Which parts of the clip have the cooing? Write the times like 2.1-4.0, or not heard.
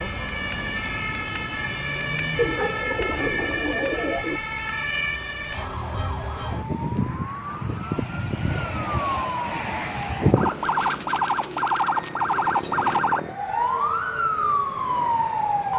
2.4-4.4, 10.4-13.1.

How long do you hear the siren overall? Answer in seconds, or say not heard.
16 s.